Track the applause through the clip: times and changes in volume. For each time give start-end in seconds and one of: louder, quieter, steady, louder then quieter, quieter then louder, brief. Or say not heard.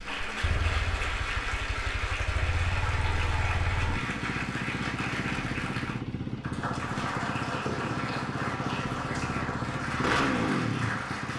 0.0-11.3 steady.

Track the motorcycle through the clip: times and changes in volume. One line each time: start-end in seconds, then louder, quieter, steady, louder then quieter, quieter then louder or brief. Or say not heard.
0.0-11.3 louder.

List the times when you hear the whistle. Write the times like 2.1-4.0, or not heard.
not heard.